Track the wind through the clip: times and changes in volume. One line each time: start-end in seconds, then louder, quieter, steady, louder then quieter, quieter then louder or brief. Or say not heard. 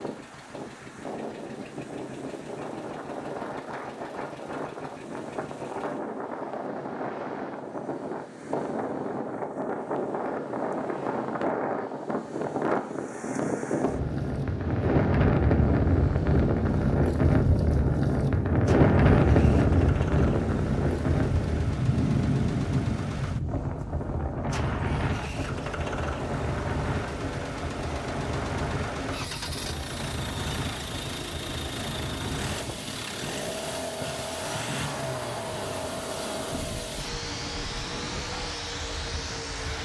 0.0-39.7 louder then quieter.